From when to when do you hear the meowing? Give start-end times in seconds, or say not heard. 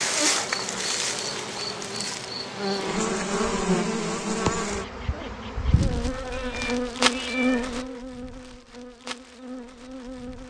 6.3-8.1.